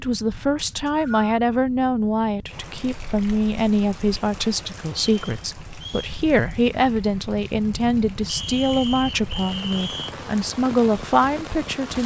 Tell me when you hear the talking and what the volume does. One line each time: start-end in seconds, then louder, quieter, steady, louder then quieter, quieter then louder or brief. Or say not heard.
0.0-12.0 steady.